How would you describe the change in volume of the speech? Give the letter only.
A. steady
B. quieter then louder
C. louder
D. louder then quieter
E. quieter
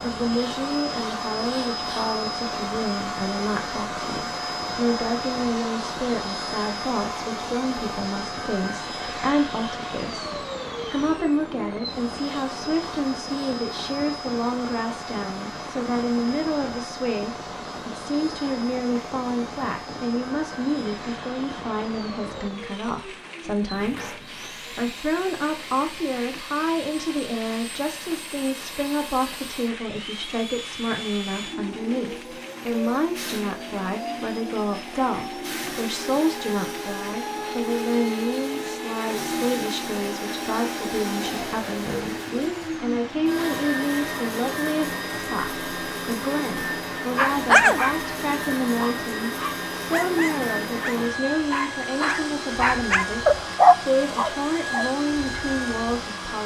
A.